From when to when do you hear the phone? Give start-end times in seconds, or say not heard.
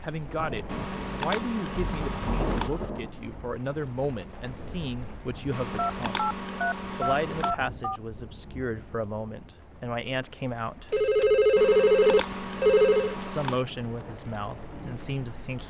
1.8-3.0, 5.8-8.0, 10.9-13.2.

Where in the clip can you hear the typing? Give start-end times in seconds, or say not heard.
0.7-2.7, 5.5-7.5, 11.6-13.6.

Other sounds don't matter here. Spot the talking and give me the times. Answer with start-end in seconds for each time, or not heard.
0.0-6.2, 7.0-10.9, 13.2-15.6.